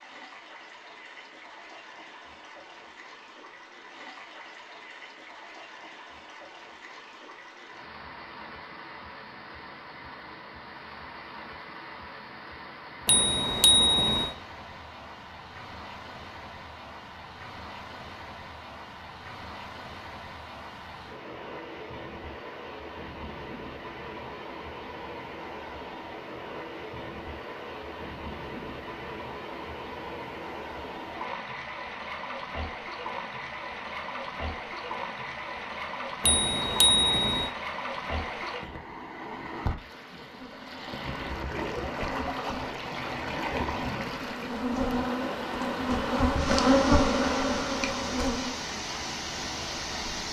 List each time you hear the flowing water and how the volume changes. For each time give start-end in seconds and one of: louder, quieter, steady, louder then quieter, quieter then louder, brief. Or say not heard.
0.0-50.2 louder.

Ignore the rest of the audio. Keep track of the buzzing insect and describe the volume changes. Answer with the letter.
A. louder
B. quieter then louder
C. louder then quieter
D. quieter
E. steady
A.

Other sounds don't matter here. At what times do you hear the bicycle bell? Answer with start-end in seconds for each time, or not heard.
13.1-14.3, 36.2-37.5.